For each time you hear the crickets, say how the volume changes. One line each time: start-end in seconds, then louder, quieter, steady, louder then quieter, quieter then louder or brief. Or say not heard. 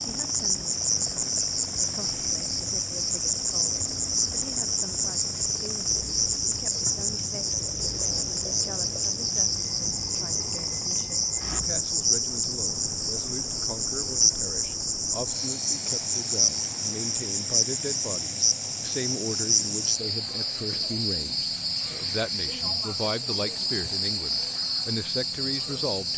0.0-26.1 steady.